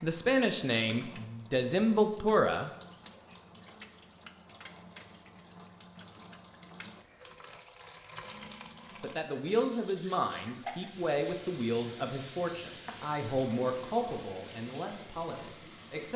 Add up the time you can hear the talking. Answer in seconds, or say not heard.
10 s.